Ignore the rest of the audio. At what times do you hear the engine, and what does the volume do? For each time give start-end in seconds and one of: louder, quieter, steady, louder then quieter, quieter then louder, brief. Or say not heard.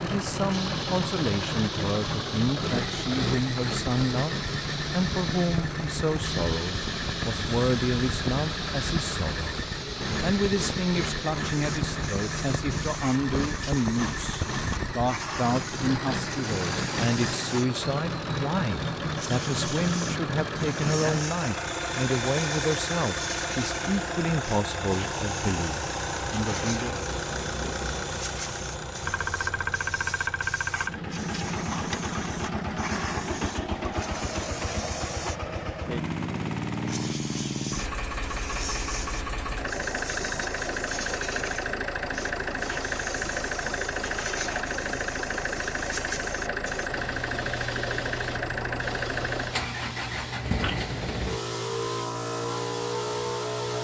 0.0-53.8 steady.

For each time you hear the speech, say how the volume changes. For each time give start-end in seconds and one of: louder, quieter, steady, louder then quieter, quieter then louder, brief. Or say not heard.
0.0-26.9 steady.